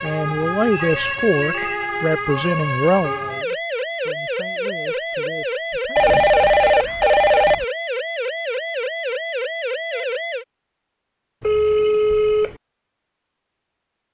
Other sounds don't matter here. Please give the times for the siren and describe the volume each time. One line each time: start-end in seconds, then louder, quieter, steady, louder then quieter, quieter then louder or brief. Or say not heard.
0.0-10.4 steady.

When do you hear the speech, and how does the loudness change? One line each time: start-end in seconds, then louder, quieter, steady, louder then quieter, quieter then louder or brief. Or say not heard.
0.0-6.2 quieter.